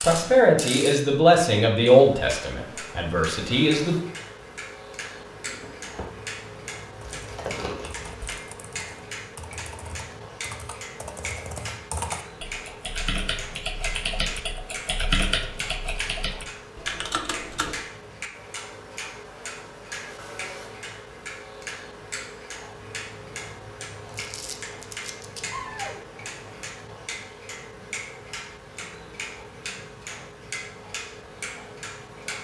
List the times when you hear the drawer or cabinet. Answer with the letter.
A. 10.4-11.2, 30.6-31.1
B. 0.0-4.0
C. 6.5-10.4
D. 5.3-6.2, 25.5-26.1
D.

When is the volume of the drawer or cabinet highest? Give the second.
26 s.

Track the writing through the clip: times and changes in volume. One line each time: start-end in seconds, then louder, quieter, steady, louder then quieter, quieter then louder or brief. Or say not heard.
not heard.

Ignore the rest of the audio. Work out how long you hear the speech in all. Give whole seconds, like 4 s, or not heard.
4 s.